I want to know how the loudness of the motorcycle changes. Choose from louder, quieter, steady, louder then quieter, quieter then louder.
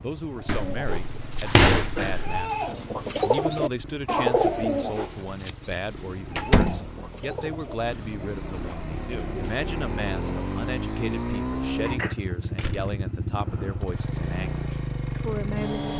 louder.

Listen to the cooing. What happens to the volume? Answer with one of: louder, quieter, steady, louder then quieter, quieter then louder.
louder then quieter.